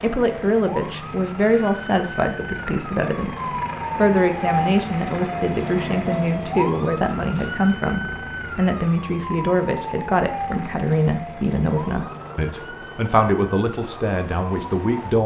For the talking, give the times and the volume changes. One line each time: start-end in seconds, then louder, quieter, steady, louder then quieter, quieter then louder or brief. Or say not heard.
0.0-15.2 steady.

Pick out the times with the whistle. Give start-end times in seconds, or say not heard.
not heard.